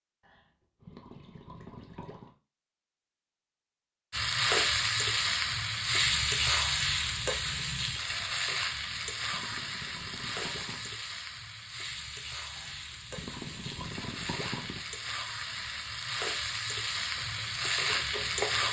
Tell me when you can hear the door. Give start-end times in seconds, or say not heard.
not heard.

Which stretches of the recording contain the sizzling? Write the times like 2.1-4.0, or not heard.
4.1-18.6.